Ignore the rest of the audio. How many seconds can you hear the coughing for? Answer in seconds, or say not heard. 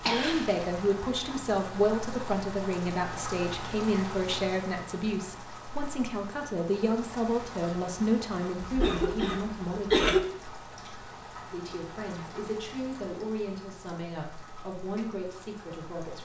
2 s.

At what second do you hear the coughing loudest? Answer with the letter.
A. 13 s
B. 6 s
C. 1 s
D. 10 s
D.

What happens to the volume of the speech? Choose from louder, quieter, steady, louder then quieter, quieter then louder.
quieter.